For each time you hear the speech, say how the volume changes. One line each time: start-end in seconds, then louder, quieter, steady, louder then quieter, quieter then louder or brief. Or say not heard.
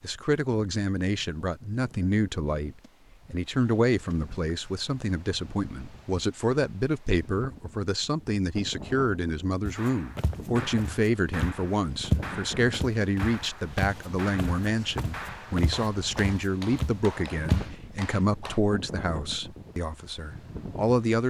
0.0-21.2 steady.